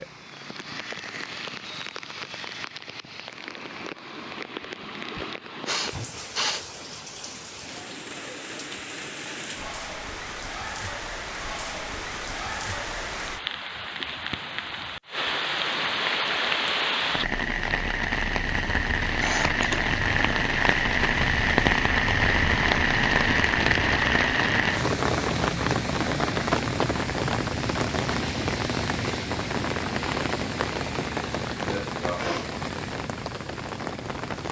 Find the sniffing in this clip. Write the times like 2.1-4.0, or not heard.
5.2-6.7, 19.2-19.9, 31.7-32.6.